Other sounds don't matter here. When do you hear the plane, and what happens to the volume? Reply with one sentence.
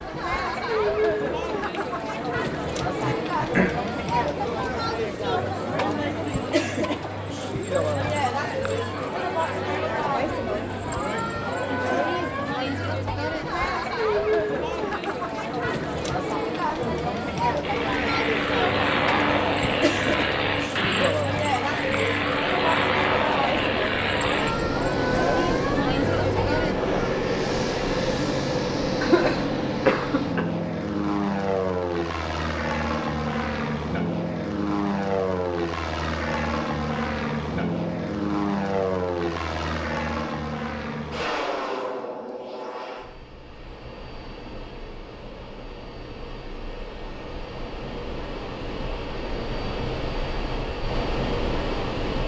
The plane can be heard from 17.6 to 52.2 s, getting quieter.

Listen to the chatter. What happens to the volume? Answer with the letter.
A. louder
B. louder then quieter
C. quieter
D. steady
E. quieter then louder
D.